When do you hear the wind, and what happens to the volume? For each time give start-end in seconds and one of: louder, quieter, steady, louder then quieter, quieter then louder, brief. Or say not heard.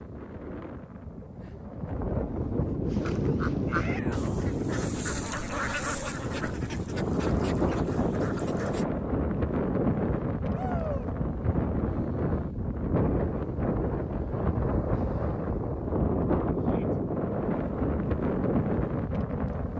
0.0-19.7 steady.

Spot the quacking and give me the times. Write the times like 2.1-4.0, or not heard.
2.9-8.8.